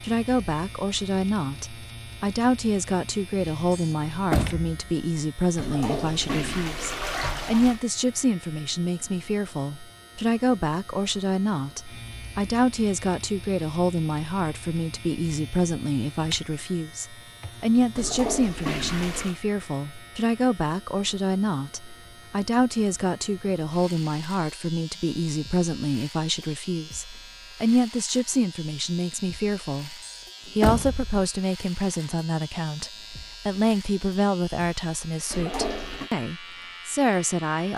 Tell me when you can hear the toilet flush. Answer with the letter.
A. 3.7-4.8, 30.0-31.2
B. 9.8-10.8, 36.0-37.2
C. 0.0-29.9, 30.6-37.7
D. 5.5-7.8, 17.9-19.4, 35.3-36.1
D.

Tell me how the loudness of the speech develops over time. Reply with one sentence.
The loudness of the speech stays about the same.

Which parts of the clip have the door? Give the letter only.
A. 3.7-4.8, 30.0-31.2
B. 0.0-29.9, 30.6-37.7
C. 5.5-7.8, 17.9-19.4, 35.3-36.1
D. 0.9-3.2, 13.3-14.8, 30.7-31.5
A.